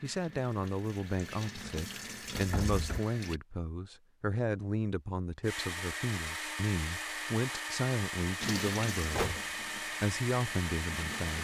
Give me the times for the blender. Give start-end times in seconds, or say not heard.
5.4-11.4.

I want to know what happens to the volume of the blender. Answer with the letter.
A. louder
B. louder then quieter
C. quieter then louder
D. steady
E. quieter
D.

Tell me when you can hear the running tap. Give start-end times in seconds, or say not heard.
0.0-3.4, 8.4-11.4.